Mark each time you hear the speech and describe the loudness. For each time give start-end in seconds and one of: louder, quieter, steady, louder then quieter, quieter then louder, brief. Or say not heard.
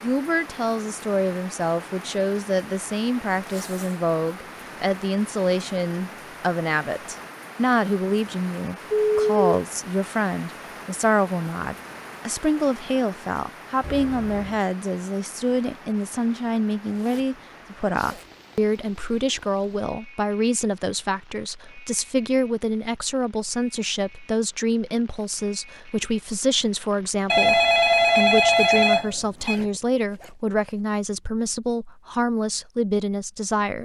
0.0-33.8 steady.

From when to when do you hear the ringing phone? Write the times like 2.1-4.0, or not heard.
8.9-9.3, 13.8-14.6, 27.3-29.6.